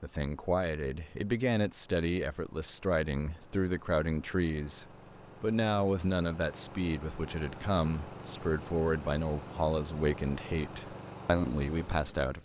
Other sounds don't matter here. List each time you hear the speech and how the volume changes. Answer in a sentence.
You can hear the speech from 0.0 to 12.3 s, at a steady volume.